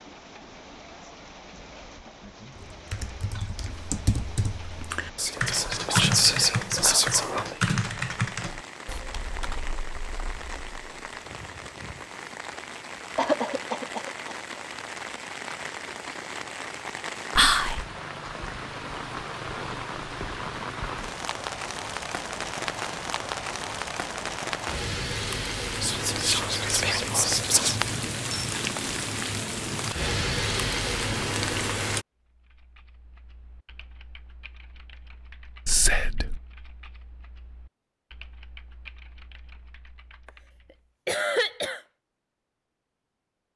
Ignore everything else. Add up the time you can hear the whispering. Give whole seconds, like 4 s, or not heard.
6 s.